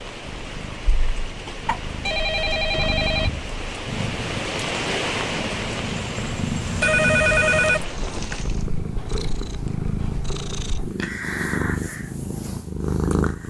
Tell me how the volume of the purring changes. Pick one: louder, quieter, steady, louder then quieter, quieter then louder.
louder.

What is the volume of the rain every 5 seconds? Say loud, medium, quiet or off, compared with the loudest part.
loud, loud, off.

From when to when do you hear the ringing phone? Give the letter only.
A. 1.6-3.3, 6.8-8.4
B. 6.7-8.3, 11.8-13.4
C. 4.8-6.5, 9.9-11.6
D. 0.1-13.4
A.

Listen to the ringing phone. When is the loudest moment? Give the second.
7 s.